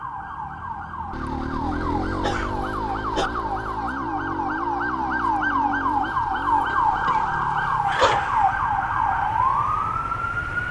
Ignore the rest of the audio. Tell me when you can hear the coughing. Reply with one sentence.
You can hear the coughing from 2.2 to 3.3 s and from 6.7 to 8.3 s.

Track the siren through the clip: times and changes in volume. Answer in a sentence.
You can hear the siren from 0.0 to 10.6 s, getting louder.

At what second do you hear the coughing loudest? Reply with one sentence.
The loudest moment of the coughing is at 8 seconds.